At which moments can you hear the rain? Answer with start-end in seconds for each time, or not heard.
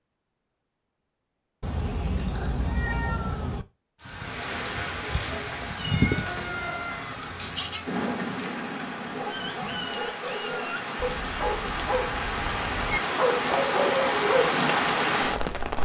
4.0-15.8.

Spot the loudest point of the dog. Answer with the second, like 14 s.
14 s.